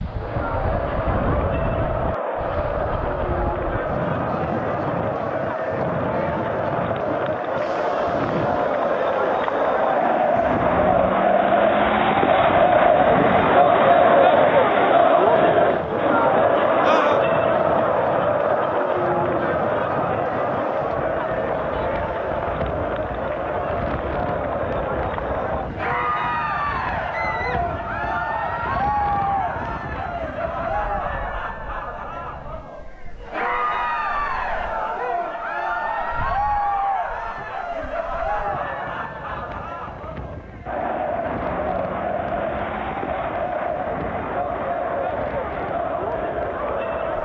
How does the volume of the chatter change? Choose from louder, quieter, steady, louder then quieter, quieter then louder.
louder then quieter.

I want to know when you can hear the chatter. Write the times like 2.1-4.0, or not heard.
0.0-47.1.